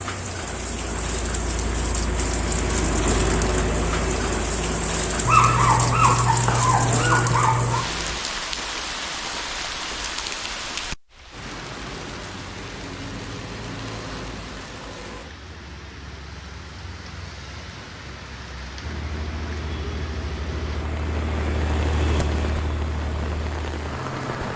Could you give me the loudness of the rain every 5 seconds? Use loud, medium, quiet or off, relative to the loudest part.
loud, loud, medium, medium, medium.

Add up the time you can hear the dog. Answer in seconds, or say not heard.
3 s.